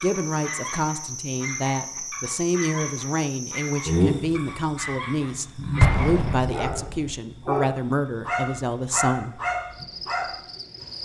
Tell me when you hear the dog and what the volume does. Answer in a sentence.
You can hear the dog from 0.0 to 10.9 s, getting louder.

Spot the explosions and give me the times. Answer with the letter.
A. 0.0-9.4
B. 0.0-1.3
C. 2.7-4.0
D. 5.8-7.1
D.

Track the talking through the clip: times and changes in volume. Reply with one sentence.
You can hear the talking from 0.0 to 9.4 s, at a steady volume.